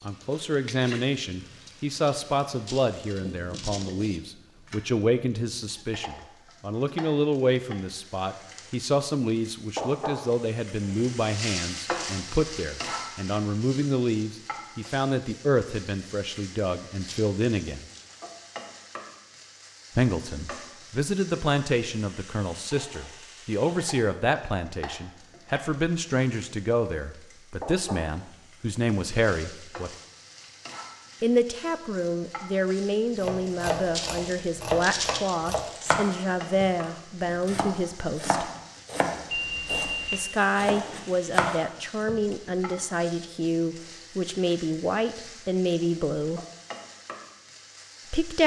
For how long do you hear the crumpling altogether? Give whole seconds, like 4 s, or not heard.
4 s.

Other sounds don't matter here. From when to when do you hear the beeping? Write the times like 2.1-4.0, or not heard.
39.2-40.2.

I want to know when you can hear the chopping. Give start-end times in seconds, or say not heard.
33.2-42.8.